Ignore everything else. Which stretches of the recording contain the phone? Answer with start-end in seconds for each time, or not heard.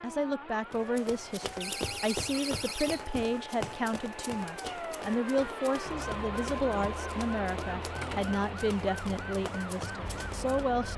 not heard.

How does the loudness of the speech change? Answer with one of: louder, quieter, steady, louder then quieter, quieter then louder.
steady.